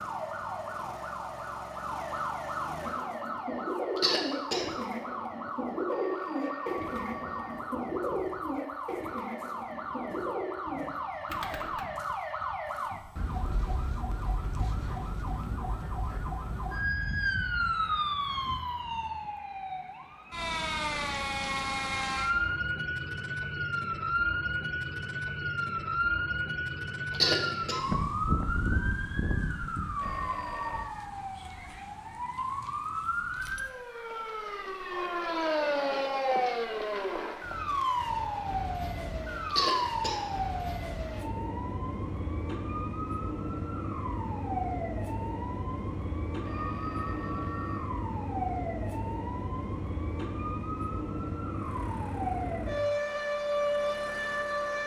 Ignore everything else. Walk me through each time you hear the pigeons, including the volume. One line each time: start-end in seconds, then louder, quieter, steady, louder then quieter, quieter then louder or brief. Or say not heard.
2.9-11.8 steady.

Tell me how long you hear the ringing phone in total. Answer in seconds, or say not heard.
4 s.